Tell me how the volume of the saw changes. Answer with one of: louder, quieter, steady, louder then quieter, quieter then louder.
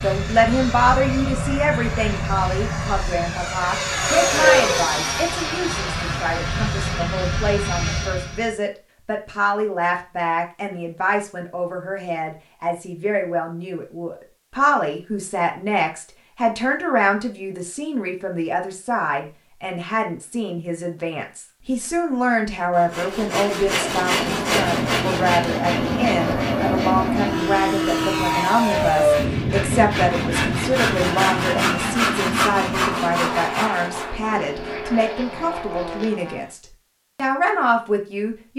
quieter then louder.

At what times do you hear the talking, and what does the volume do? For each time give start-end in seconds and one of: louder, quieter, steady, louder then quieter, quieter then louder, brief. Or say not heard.
0.0-38.5 steady.